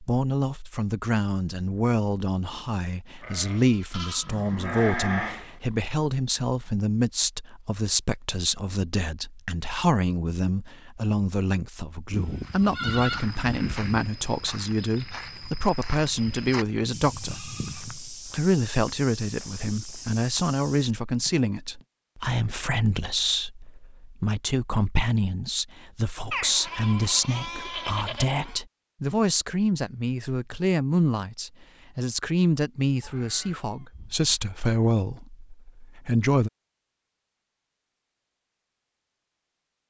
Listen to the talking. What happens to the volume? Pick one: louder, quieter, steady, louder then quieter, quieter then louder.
steady.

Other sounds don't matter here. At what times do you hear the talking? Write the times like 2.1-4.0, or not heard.
0.0-36.5.